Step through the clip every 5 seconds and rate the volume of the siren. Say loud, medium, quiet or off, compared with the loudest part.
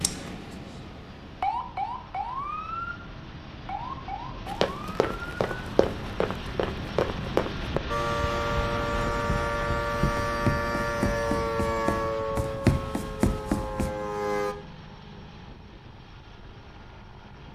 medium, loud, loud, off.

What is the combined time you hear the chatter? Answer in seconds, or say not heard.
not heard.